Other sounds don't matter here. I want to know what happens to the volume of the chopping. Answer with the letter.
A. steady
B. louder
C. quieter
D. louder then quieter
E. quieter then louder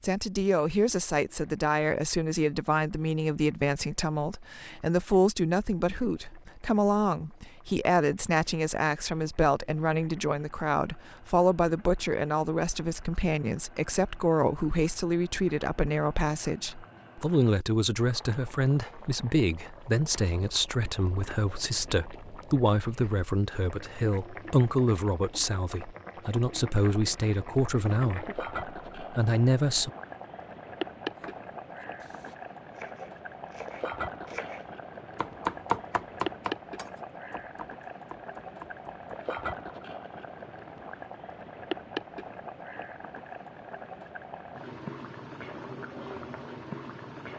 D.